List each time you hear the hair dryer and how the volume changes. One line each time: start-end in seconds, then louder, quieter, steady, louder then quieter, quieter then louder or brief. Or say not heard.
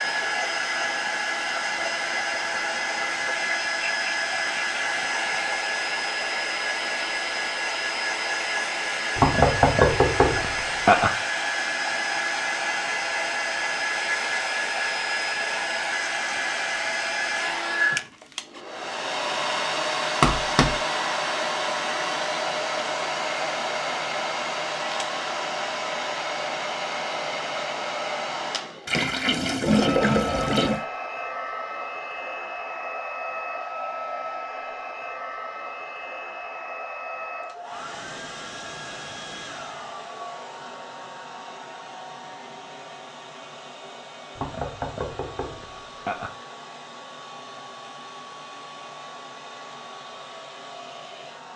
0.0-51.5 quieter.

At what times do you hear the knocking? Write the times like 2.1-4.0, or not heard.
9.2-11.1, 20.2-20.8, 44.4-46.3.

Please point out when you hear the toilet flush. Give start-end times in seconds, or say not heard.
28.9-30.9.